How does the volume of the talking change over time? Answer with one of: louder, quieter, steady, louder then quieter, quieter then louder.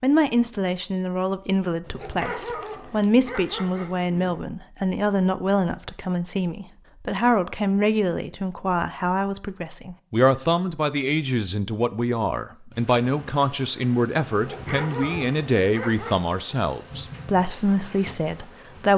steady.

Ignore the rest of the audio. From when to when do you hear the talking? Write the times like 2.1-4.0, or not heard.
0.0-18.9.